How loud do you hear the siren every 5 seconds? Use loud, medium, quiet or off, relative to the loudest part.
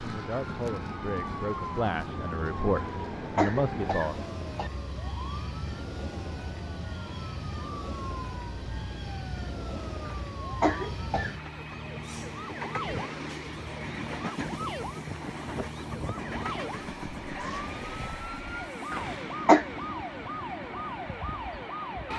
loud, medium, loud, loud, loud.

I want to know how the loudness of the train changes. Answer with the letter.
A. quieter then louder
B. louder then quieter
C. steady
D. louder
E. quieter
C.